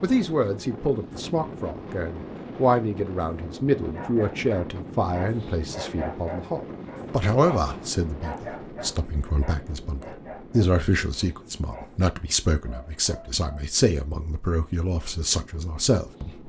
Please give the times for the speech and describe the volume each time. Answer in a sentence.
The speech can be heard from 0.0 to 16.4 s, at a steady volume.